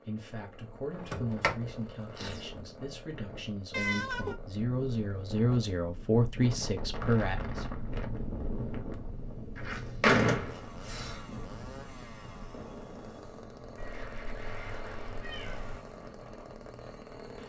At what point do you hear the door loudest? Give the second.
10 s.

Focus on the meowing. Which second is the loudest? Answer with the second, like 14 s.
4 s.